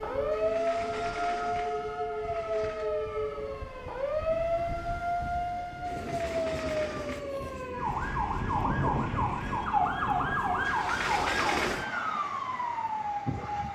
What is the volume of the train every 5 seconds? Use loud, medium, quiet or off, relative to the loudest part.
loud, medium, loud.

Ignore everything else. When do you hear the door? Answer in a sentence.
You can hear the door from 0.3 to 2.9 s, from 5.8 to 7.2 s and from 10.7 to 11.9 s.